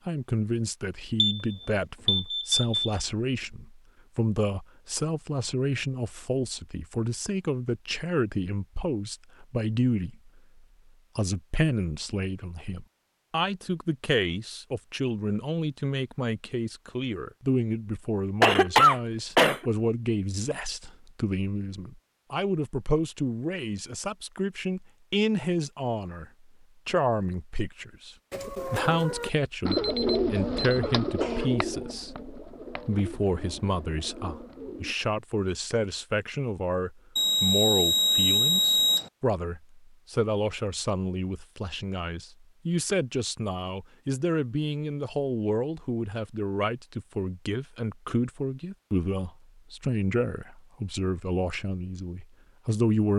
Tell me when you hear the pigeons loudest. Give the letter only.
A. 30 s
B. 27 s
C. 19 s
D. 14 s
A.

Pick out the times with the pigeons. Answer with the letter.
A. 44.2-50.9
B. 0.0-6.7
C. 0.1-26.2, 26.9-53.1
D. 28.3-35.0
D.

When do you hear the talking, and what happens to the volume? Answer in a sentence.
You can hear the talking from 0.1 to 26.2 s, at a steady volume; and from 26.9 to 53.1 s, at a steady volume.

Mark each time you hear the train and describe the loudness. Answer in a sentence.
You can't hear the train here.